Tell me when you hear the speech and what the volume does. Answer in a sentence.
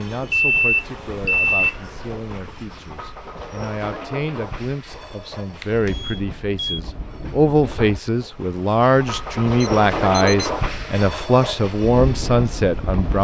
The speech can be heard from 0.0 to 13.1 s, getting louder.